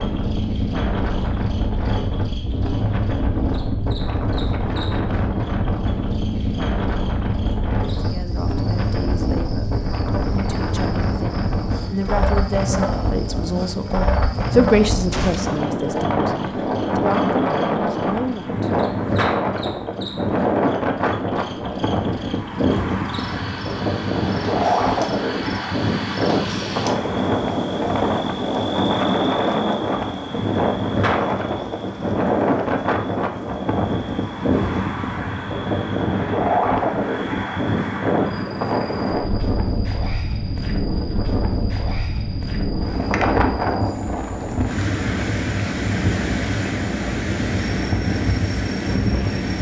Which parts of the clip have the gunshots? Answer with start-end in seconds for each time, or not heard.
15.1-15.8.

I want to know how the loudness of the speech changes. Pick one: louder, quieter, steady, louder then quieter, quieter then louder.
louder then quieter.